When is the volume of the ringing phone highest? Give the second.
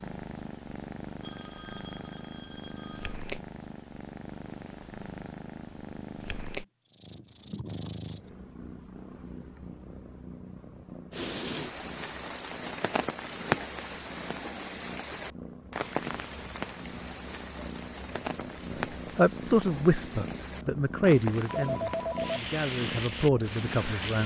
22 s.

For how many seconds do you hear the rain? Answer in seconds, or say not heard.
13 s.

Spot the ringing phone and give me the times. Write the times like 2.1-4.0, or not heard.
1.2-3.2, 21.4-22.4.